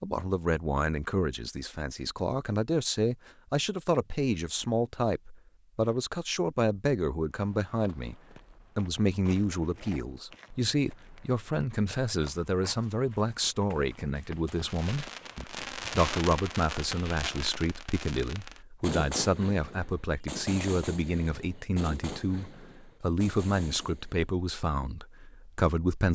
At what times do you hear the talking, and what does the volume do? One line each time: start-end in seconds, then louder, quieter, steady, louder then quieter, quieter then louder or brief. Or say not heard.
0.0-26.1 steady.